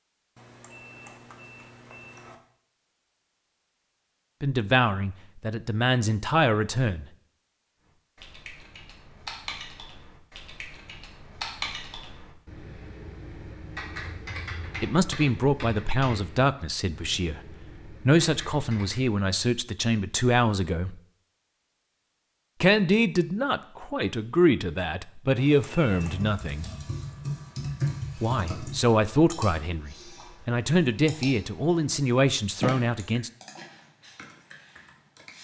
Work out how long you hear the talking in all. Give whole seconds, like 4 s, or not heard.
18 s.